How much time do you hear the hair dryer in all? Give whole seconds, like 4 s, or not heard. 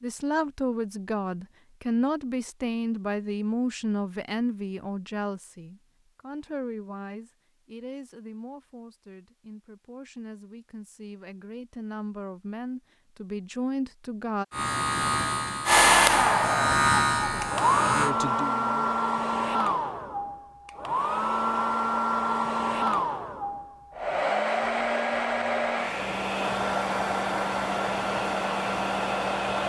14 s.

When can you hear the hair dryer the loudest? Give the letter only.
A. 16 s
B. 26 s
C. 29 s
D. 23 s
A.